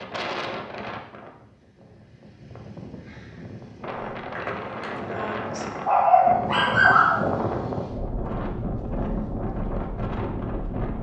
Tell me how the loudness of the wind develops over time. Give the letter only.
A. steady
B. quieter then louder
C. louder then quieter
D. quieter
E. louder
E.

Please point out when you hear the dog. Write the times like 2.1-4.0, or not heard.
3.9-7.2.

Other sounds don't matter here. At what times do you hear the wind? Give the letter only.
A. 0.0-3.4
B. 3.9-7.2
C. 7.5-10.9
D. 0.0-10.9
D.